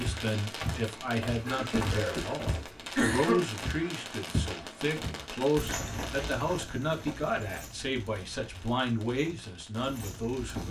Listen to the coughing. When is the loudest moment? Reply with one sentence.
The loudest moment of the coughing is at 3 seconds.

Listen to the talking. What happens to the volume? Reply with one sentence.
The loudness of the talking stays about the same.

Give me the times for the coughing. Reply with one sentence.
You can hear the coughing from 1.4 to 3.5 s.